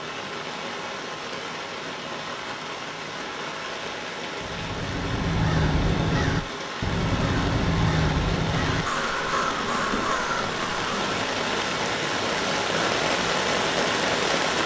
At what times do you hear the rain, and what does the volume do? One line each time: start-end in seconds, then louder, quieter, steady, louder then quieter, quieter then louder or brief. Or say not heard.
0.0-14.6 louder.